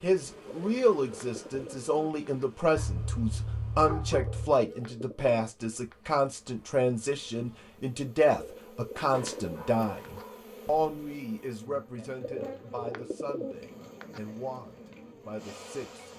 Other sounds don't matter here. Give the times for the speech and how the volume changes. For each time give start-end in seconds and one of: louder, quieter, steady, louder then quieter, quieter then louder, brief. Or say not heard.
0.0-16.1 quieter.